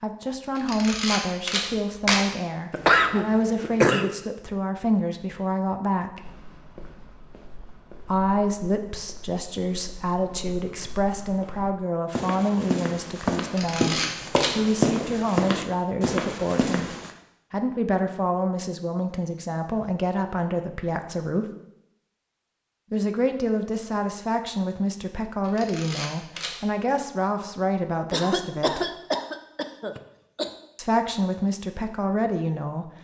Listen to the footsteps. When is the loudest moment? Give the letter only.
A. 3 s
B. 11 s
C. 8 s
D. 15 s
D.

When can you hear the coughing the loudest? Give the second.
3 s.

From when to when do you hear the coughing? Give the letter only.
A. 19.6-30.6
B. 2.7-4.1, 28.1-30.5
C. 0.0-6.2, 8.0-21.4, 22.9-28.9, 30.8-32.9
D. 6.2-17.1
B.